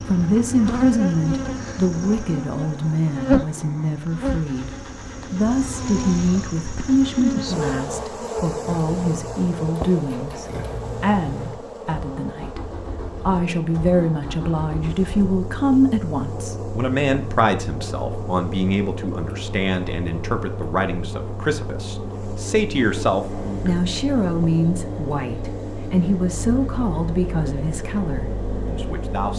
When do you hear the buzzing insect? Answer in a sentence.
You can hear the buzzing insect from 0.0 to 29.2 s.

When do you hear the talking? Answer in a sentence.
You can hear the talking from 0.0 to 29.3 s.